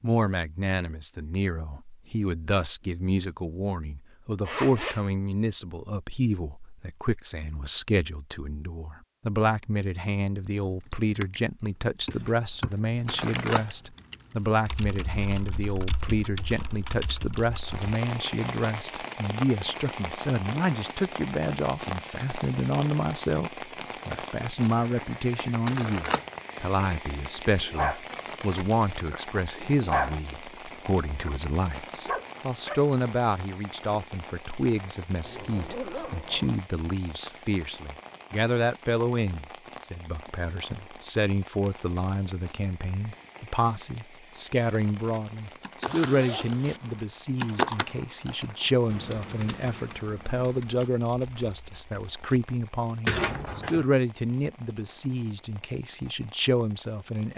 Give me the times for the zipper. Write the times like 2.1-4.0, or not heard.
4.5-5.0, 35.2-36.5, 45.8-46.8.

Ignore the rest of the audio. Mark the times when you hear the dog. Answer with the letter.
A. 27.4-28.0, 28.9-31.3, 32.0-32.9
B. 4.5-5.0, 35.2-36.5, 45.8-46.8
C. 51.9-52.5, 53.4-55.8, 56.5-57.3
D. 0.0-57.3
A.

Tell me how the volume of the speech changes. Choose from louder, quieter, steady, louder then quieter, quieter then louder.
steady.